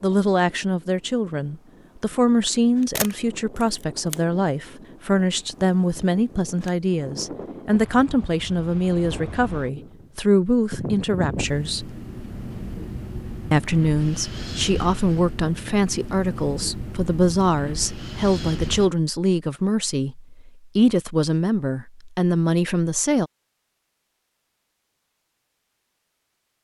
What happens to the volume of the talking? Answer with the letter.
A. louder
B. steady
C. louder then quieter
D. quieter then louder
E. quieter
B.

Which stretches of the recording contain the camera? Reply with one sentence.
The camera can be heard from 3.0 to 4.2 s.